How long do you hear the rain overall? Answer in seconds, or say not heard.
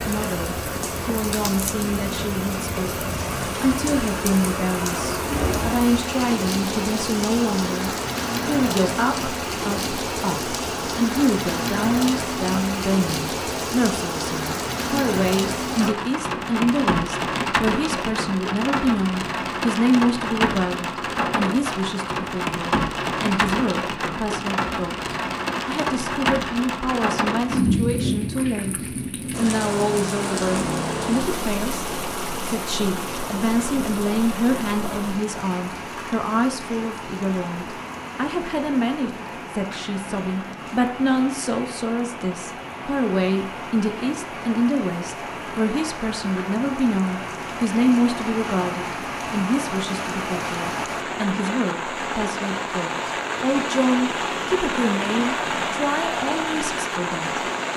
58 s.